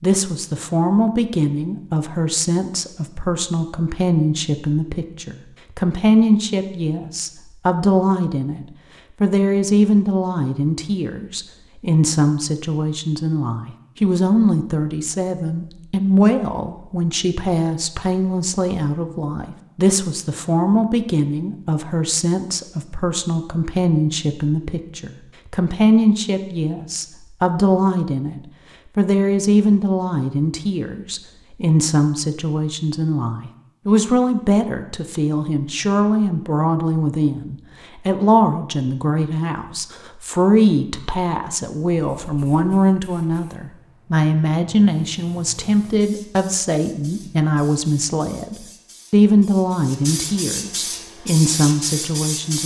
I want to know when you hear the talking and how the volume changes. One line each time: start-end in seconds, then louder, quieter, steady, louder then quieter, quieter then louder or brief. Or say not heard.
0.0-52.6 steady.